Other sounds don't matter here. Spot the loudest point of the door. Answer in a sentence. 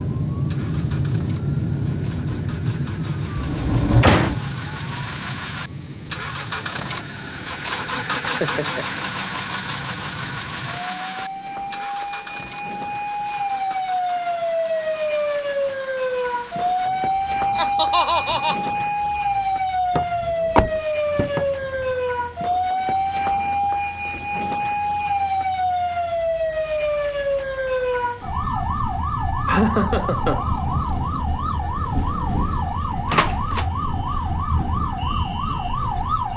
The loudest moment of the door is at 4 seconds.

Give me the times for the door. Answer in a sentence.
You can hear the door from 3.4 to 4.4 s, from 19.9 to 21.9 s and from 33.1 to 33.6 s.